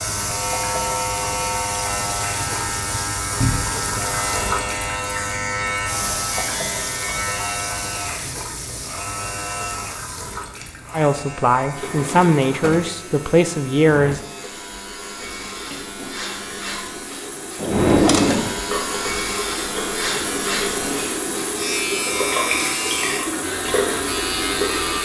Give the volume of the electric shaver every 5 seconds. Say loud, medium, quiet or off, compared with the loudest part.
loud, loud, medium, loud, loud.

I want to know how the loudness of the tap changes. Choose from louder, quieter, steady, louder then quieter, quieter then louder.
quieter then louder.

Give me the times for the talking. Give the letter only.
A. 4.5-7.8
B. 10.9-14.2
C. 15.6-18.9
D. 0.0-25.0
B.